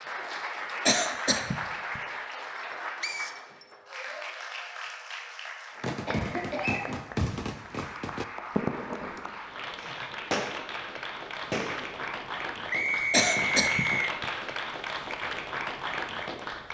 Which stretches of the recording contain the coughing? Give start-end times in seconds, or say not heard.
0.8-2.0, 6.0-7.0, 13.1-14.2.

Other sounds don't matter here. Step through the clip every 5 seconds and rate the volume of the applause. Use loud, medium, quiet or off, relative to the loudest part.
loud, medium, loud, loud.